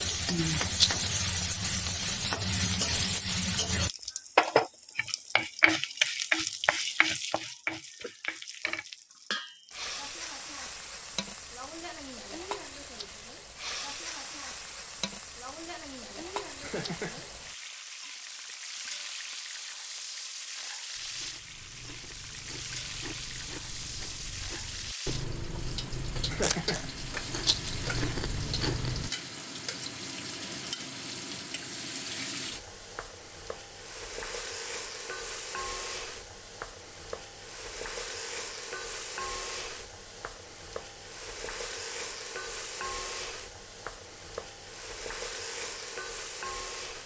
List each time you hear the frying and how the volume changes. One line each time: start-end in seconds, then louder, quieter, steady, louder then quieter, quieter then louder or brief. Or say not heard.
0.0-47.0 quieter.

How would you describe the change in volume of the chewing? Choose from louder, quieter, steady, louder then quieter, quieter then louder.
louder.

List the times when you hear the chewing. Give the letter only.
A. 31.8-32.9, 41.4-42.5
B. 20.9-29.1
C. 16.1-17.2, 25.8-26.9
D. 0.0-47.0
B.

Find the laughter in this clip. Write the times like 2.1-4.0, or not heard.
16.1-17.2, 25.8-26.9.